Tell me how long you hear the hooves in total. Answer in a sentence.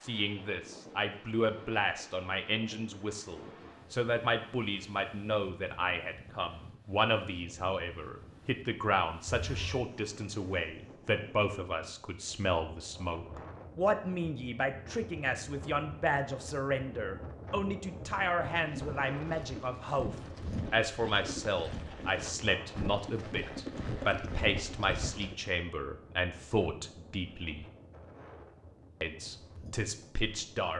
You can hear the hooves for 7 seconds altogether.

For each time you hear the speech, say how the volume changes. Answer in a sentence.
The speech can be heard from 0.0 to 27.6 s, at a steady volume; and briefly from 29.0 to 30.7 s.